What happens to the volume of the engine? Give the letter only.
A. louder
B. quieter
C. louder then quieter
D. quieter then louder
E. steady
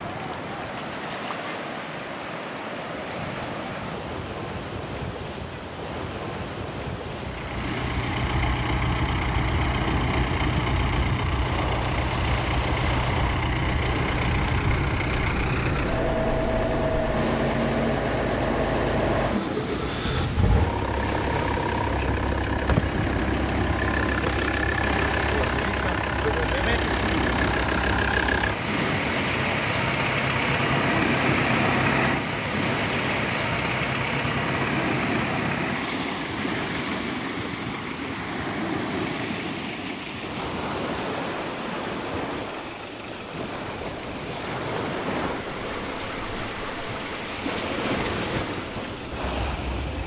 B.